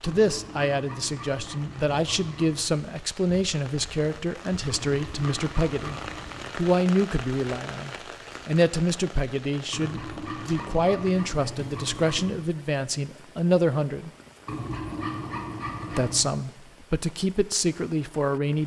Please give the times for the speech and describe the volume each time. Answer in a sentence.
The speech can be heard from 0.0 to 14.1 s, at a steady volume; and briefly from 15.9 to 18.6 s.